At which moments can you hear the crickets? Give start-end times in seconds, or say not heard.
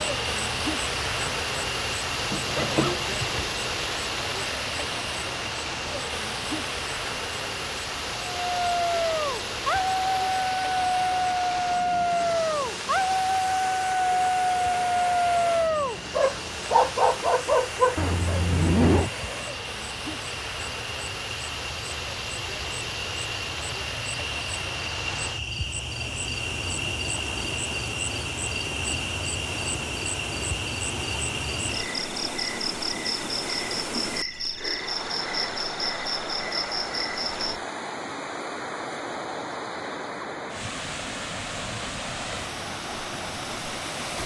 0.0-37.6.